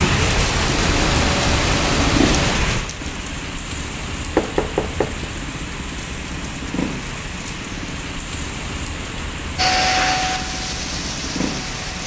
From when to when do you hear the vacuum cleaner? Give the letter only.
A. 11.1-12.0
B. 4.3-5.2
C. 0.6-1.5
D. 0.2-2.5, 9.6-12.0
D.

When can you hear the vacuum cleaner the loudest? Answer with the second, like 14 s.
10 s.